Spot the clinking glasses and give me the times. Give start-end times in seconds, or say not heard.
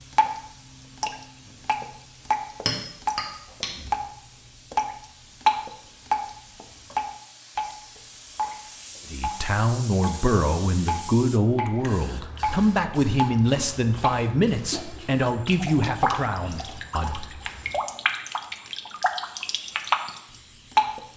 2.6-3.7.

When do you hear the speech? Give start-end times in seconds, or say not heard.
9.1-17.4.